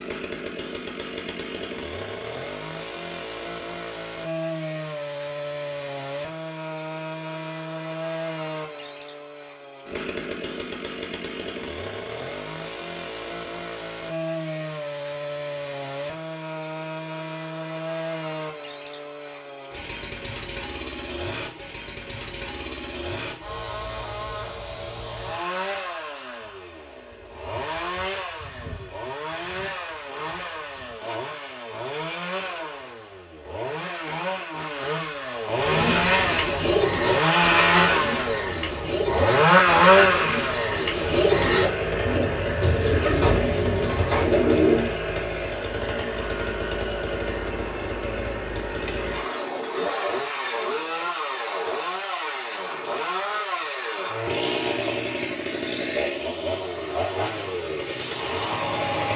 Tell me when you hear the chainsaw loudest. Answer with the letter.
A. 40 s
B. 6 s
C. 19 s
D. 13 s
A.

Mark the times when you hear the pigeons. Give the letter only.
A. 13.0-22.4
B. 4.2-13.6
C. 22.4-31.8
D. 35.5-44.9
D.